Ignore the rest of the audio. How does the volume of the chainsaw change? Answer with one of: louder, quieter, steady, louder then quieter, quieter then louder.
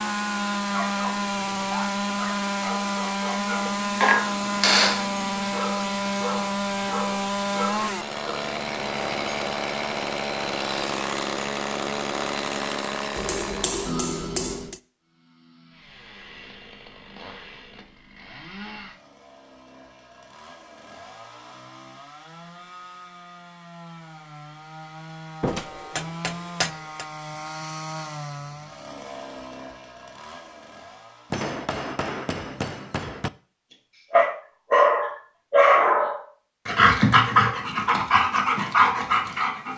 quieter then louder.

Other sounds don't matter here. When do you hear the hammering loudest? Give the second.
5 s.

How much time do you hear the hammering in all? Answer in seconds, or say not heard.
7 s.